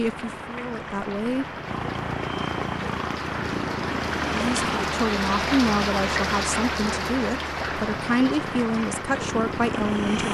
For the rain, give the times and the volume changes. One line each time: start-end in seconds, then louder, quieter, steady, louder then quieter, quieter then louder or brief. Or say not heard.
0.0-10.2 louder then quieter.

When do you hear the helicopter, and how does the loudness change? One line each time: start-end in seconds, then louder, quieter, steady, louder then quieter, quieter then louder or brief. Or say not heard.
0.0-5.0 louder
7.6-10.2 brief.